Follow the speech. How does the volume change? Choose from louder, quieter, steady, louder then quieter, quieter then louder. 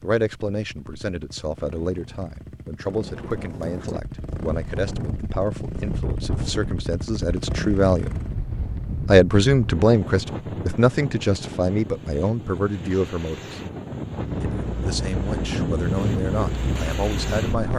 louder then quieter.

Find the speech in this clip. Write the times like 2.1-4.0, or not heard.
0.0-8.2, 9.1-13.6, 14.7-17.7.